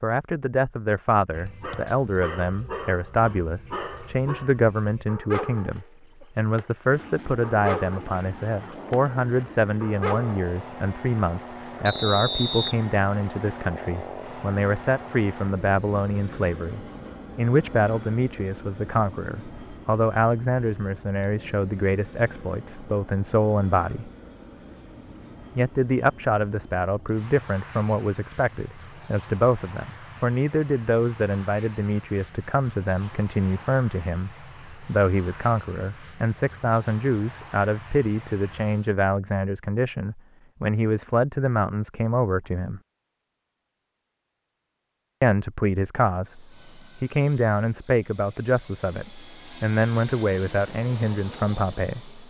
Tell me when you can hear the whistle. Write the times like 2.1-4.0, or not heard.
11.8-12.8.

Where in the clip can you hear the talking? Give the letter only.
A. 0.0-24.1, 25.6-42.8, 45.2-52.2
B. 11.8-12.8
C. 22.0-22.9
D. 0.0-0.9
A.